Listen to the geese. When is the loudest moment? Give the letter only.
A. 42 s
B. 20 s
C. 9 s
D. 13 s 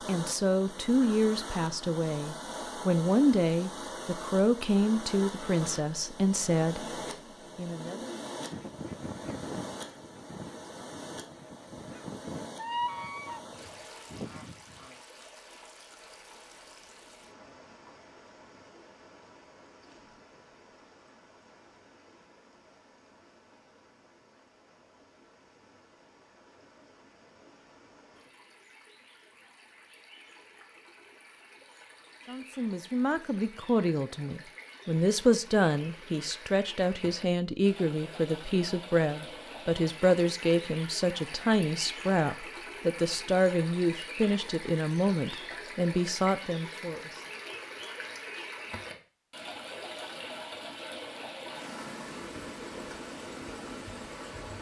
D.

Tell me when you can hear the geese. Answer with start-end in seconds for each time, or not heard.
8.5-15.0.